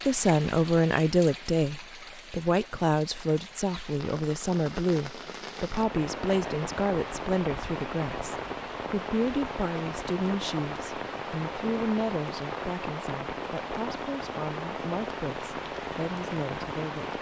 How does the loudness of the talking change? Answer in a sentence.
The loudness of the talking goes down.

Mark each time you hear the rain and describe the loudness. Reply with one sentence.
The rain can be heard from 0.0 to 17.1 s, getting louder.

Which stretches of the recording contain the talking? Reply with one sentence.
The talking can be heard from 0.1 to 17.1 s.